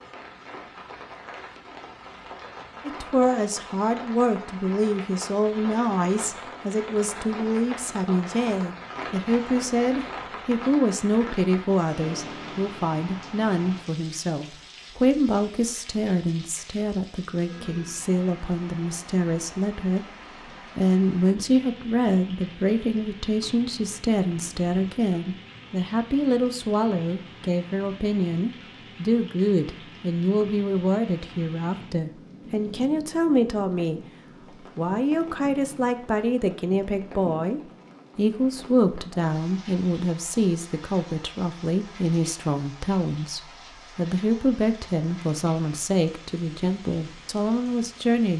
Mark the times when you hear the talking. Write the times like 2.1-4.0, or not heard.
2.9-20.1, 20.8-48.3.